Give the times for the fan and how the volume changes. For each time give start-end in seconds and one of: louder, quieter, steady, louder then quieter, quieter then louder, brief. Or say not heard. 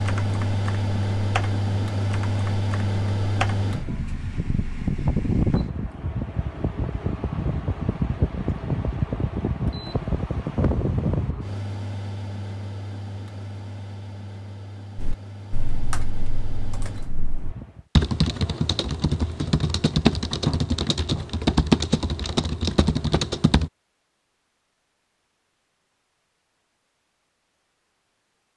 0.0-17.9 quieter.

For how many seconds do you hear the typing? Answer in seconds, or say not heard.
13 s.